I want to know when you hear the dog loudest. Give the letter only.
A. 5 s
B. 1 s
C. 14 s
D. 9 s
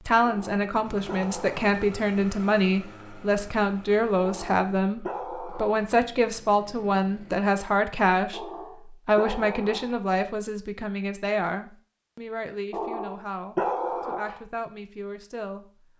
C.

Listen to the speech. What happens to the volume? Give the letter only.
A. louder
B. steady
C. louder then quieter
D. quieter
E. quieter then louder
D.